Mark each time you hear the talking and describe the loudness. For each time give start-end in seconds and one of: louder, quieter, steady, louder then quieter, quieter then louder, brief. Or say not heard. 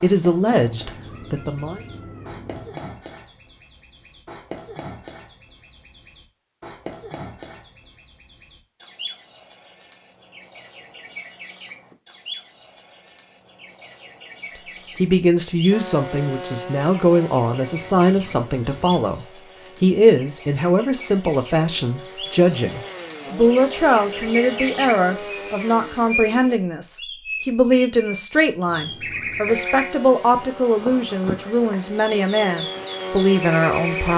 0.0-1.8 brief
14.9-34.1 steady.